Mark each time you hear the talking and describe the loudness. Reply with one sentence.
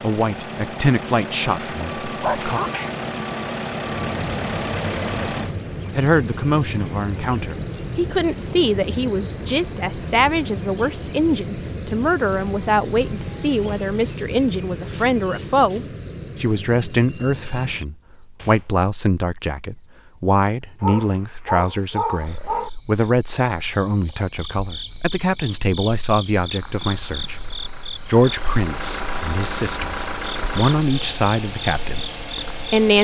The talking can be heard briefly from 0.0 to 2.6 s; and from 6.0 to 33.0 s, at a steady volume.